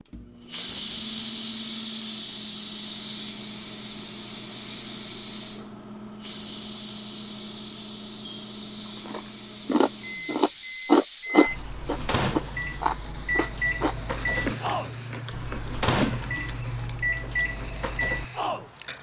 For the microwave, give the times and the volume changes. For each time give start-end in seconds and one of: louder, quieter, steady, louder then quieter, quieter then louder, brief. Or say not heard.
0.1-18.9 louder.